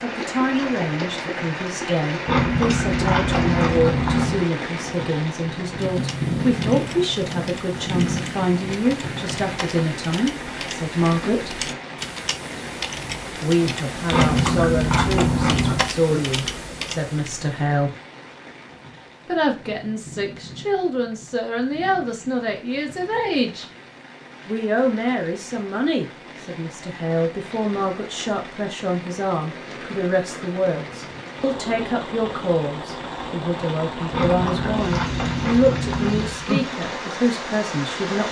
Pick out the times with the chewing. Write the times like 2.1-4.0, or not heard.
2.2-4.5, 14.1-15.8, 34.1-36.4.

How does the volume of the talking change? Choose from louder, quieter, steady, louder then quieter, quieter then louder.
steady.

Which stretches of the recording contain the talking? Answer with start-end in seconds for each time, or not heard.
0.0-11.7, 13.4-17.9, 19.2-23.6, 24.4-38.2.